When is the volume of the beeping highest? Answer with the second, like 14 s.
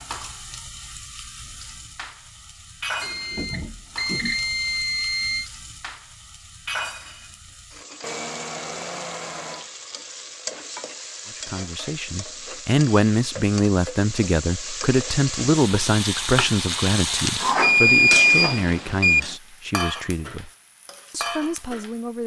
18 s.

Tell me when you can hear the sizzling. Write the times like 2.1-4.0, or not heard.
0.0-22.2.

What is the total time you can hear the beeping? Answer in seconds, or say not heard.
6 s.